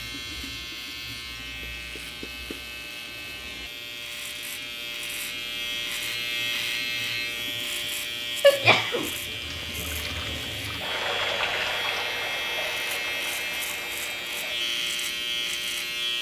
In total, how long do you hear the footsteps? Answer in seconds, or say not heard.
not heard.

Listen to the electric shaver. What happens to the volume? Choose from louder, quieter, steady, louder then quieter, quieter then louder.
louder.